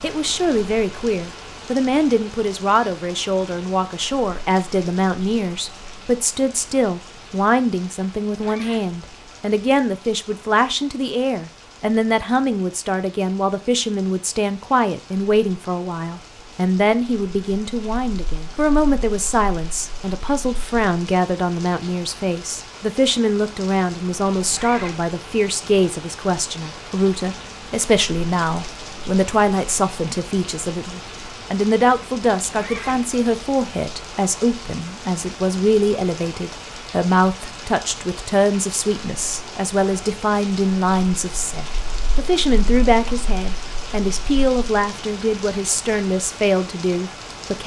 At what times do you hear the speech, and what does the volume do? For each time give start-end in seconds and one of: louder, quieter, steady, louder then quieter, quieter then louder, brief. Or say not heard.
0.0-47.6 steady.